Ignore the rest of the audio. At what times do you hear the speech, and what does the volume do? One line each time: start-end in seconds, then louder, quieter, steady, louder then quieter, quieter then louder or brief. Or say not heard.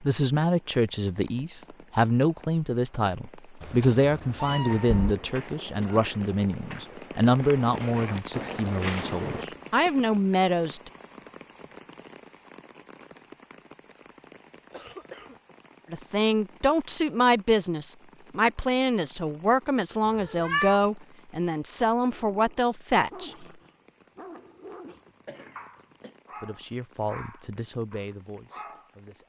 0.0-10.9 steady
15.9-23.4 steady
26.4-29.2 brief.